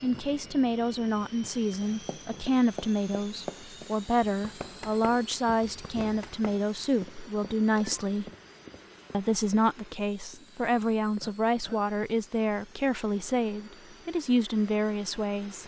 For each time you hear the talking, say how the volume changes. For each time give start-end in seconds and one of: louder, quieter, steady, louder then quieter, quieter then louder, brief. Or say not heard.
0.0-8.3 steady
9.1-15.6 steady.